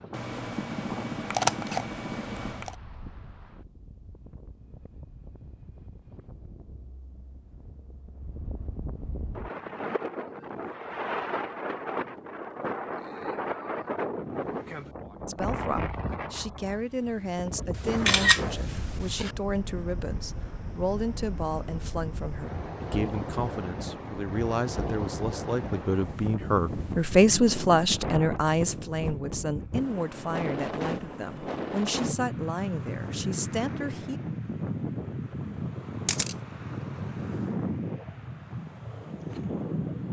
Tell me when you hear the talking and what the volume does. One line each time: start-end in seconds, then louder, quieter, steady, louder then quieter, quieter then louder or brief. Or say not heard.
15.2-34.2 louder then quieter.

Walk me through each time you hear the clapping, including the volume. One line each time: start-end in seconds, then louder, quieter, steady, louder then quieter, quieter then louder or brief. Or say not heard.
not heard.